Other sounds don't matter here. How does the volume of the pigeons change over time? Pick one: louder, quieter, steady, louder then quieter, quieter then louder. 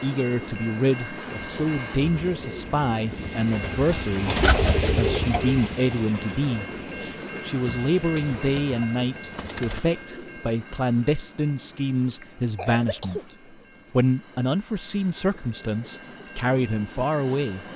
louder then quieter.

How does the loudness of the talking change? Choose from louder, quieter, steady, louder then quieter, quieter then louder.
steady.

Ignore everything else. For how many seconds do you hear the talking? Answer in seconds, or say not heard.
16 s.